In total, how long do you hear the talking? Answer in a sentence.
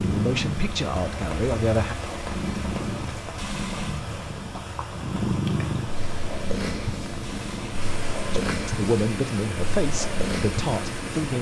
The talking can be heard for 5 seconds in total.